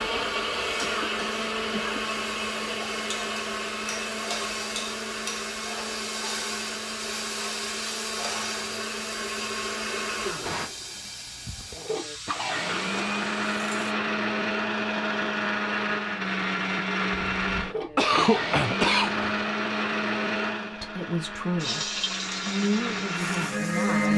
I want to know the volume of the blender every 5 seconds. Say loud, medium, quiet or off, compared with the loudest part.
loud, medium, loud, loud, loud.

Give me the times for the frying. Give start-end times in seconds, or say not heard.
0.0-13.9, 21.6-24.1.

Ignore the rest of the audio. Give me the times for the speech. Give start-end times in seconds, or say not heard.
20.6-24.1.